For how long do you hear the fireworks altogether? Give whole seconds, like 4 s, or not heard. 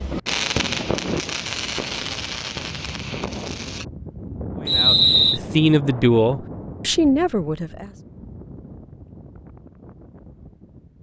4 s.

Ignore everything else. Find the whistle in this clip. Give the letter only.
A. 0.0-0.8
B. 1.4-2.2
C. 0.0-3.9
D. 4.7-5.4
D.